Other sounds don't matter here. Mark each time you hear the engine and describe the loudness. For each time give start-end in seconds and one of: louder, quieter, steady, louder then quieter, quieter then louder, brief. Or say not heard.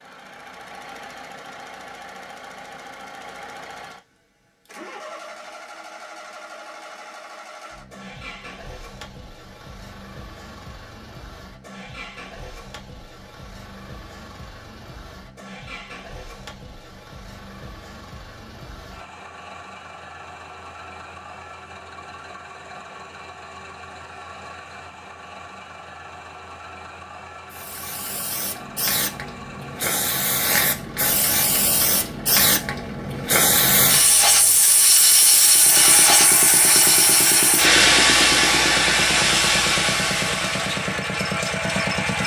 0.0-42.2 louder.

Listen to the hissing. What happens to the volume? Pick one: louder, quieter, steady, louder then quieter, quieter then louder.
louder.